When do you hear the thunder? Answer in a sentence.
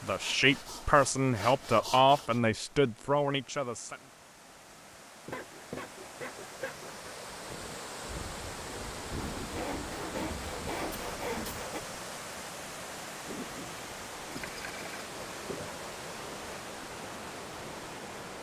The thunder can be heard from 8.0 to 11.7 s.